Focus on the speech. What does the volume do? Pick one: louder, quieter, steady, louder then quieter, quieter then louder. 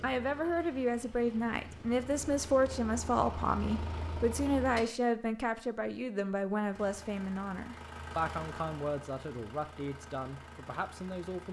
quieter.